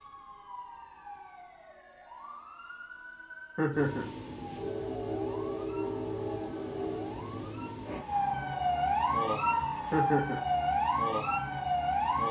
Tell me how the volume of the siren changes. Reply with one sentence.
The loudness of the siren goes up.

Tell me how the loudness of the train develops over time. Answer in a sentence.
The loudness of the train goes down.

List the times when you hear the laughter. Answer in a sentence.
You can hear the laughter from 3.5 to 4.1 s and from 9.9 to 10.4 s.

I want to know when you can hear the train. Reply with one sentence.
You can hear the train from 3.7 to 12.2 s.